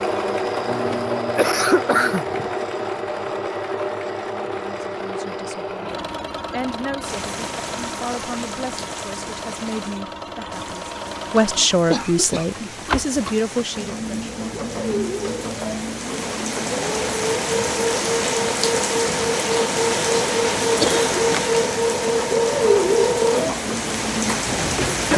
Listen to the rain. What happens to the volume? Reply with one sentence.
The loudness of the rain goes up.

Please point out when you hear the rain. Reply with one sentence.
You can hear the rain from 7.0 to 25.1 s.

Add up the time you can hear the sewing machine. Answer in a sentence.
You can hear the sewing machine for 25 seconds altogether.